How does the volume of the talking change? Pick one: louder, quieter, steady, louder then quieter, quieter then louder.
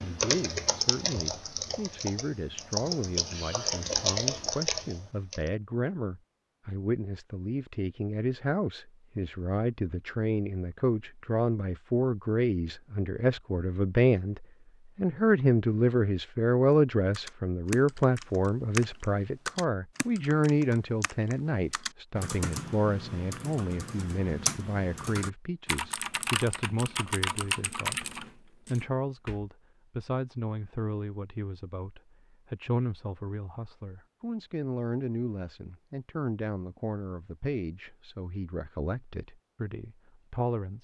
louder then quieter.